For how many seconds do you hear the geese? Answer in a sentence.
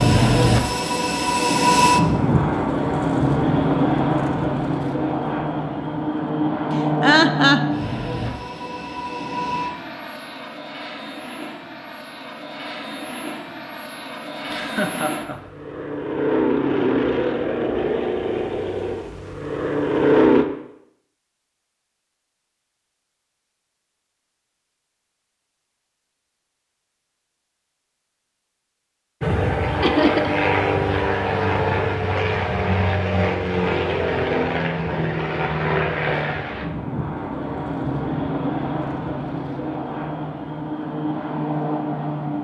The geese can't be heard in this clip.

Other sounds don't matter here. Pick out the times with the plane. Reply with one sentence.
You can hear the plane from 0.0 to 20.4 s and from 29.2 to 42.3 s.